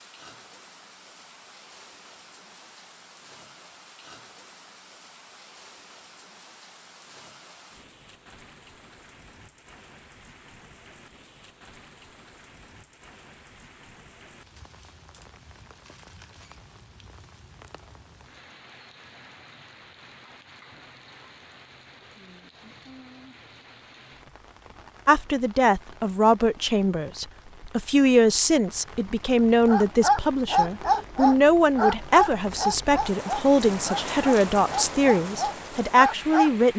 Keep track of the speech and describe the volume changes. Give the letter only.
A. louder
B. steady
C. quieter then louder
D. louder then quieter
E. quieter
B.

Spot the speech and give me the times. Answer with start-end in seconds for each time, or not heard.
25.1-36.7.